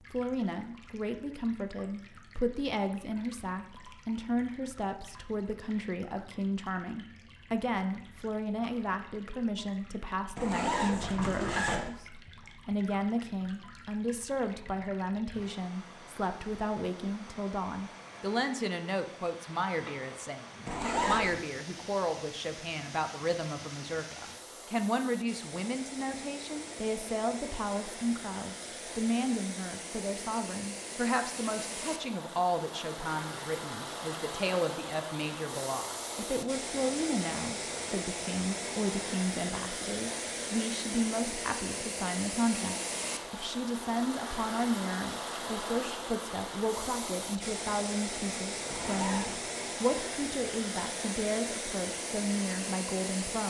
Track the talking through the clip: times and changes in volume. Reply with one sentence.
You can hear the talking from 0.1 to 53.4 s, at a steady volume.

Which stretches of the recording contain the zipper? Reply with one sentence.
The zipper can be heard from 10.3 to 11.9 s, from 20.6 to 21.4 s and from 48.7 to 49.4 s.